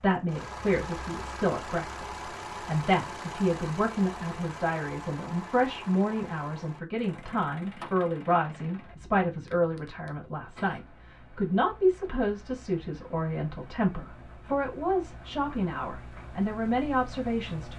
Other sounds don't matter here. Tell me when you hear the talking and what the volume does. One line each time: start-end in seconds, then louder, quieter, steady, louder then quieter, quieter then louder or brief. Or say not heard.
0.0-17.7 steady.